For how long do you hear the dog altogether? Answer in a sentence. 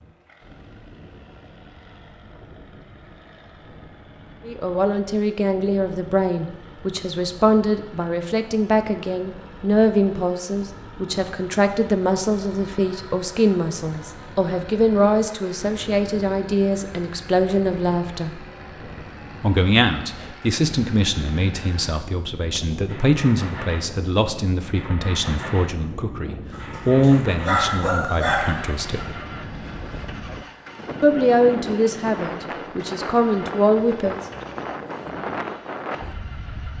The dog can be heard for 2 seconds in total.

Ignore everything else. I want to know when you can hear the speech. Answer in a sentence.
You can hear the speech from 4.5 to 18.4 s, from 19.4 to 29.1 s and from 31.0 to 34.1 s.